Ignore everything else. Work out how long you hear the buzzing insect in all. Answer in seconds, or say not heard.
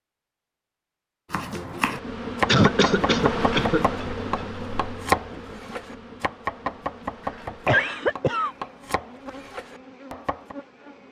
9 s.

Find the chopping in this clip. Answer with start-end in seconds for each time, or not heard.
1.3-10.6.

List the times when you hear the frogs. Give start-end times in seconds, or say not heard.
not heard.